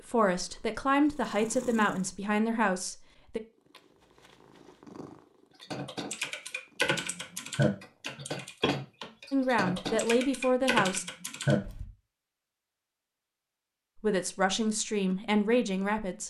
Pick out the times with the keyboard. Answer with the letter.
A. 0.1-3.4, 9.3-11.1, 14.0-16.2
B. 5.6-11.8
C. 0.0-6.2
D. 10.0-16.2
B.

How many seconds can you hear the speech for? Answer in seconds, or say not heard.
7 s.